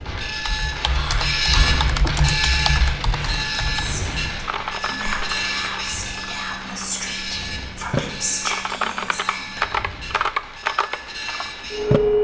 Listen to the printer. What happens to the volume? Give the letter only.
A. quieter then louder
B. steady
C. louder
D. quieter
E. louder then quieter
D.